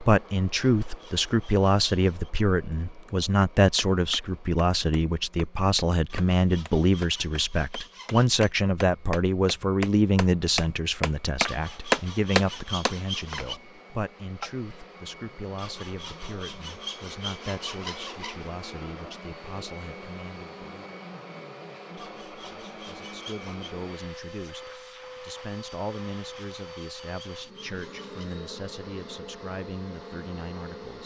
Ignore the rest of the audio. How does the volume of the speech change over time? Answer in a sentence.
The volume of the speech goes down.